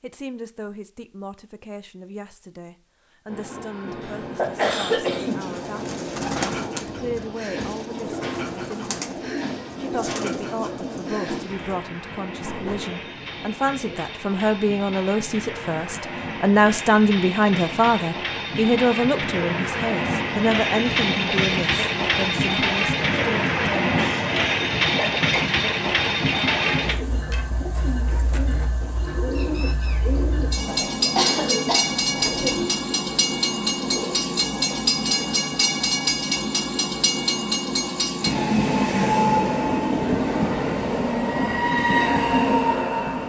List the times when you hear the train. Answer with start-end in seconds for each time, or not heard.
3.2-43.2.